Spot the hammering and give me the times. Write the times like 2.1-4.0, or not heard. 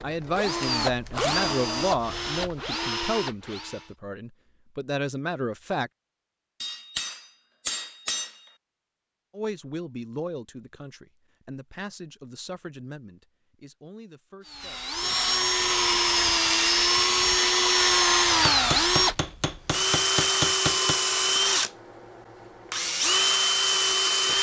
6.6-8.4, 18.3-21.0.